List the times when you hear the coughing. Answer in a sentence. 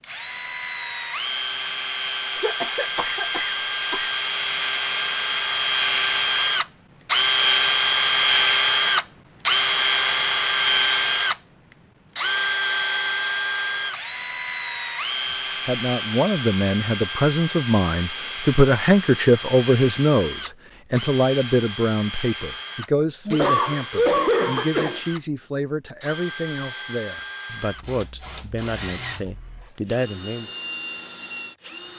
You can hear the coughing from 2.4 to 4.1 s and from 23.2 to 25.0 s.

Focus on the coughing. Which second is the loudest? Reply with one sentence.
The loudest moment of the coughing is at 24 seconds.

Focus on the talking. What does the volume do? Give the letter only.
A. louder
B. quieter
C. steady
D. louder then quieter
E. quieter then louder
B.